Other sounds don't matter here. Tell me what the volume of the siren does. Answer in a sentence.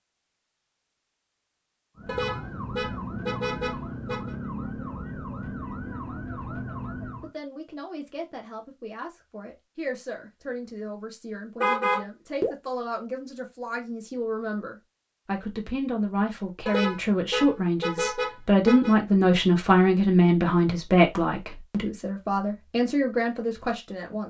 The volume of the siren stays about the same.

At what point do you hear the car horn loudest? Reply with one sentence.
The volume of the car horn peaks at 12 seconds.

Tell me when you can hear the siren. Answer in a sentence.
The siren can be heard from 1.9 to 7.3 s.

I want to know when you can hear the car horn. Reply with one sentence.
The car horn can be heard from 2.0 to 4.3 s, from 11.6 to 12.5 s and from 16.6 to 18.9 s.